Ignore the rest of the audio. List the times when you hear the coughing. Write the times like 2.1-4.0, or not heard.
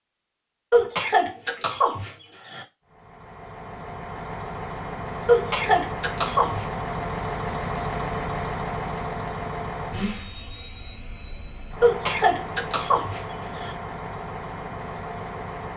0.7-2.6, 5.2-6.7, 11.8-13.8.